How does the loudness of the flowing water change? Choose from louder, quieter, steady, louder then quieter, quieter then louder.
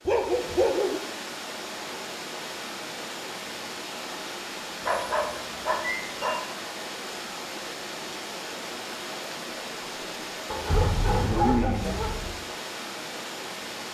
steady.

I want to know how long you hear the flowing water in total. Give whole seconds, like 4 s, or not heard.
14 s.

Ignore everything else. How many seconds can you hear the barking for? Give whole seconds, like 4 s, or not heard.
4 s.